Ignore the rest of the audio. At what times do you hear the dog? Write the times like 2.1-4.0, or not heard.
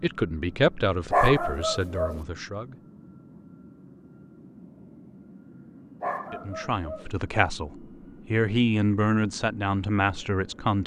1.1-2.2, 6.0-7.1.